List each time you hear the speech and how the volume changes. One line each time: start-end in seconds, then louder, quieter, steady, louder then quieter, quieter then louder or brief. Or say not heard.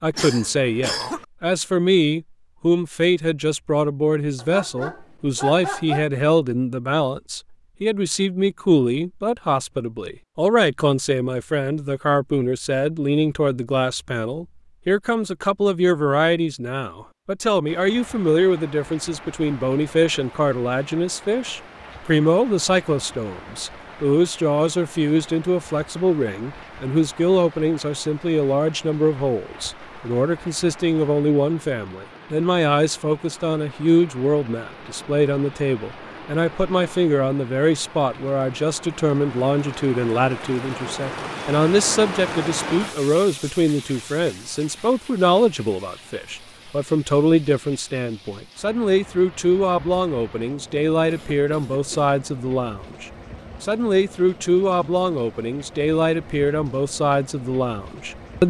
0.0-58.4 steady.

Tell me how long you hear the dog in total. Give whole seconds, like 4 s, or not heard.
2 s.